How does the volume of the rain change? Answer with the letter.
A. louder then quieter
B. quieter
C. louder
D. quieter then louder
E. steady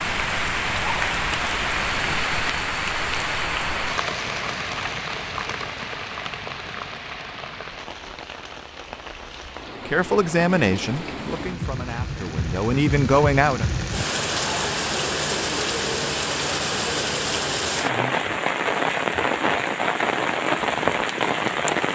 D.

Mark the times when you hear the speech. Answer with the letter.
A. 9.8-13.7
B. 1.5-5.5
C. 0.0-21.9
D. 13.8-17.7
A.